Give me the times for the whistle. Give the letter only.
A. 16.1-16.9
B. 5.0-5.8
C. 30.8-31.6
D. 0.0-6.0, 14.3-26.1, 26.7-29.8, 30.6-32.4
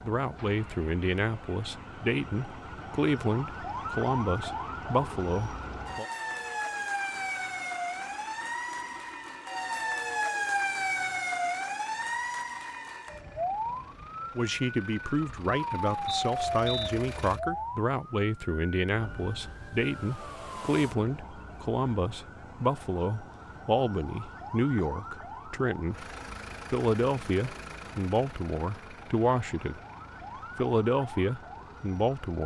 A.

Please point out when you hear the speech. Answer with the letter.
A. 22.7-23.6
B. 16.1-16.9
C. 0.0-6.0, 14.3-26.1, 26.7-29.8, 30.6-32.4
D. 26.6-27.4
C.